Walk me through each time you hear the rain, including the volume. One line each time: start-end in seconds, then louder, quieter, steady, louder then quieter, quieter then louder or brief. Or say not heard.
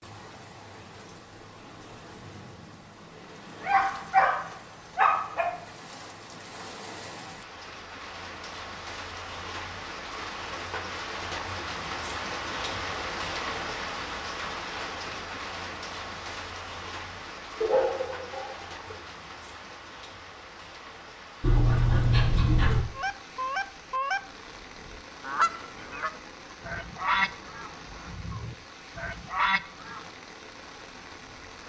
0.0-31.6 louder then quieter.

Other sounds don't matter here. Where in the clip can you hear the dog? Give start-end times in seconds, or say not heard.
3.6-5.5, 17.6-18.8, 21.4-22.8.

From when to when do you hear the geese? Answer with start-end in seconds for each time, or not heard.
22.9-24.2, 24.8-30.1.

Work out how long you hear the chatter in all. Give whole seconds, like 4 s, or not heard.
not heard.